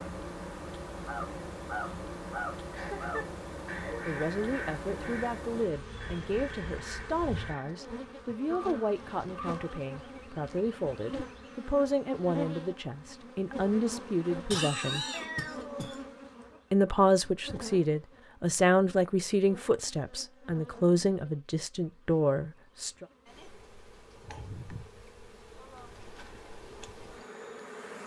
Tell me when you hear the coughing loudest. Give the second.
15 s.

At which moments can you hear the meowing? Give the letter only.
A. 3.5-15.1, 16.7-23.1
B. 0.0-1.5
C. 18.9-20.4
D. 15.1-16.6
D.